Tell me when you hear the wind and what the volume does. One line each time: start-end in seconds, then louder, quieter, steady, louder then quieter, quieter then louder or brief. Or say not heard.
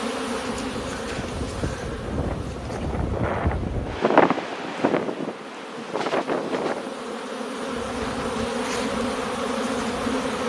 0.1-10.4 louder then quieter.